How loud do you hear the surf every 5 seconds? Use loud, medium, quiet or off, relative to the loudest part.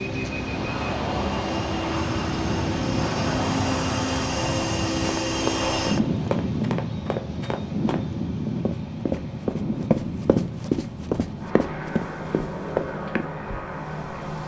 loud, quiet, quiet.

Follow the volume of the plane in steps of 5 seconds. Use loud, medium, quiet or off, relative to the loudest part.
loud, loud, medium.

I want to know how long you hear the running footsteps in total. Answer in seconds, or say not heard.
8 s.